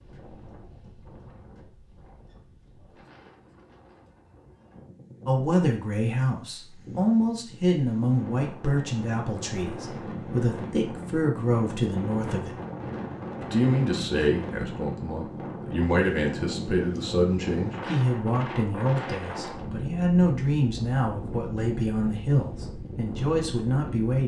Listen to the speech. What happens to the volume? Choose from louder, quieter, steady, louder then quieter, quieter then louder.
steady.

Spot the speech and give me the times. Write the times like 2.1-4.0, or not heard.
5.2-12.6, 13.4-24.2.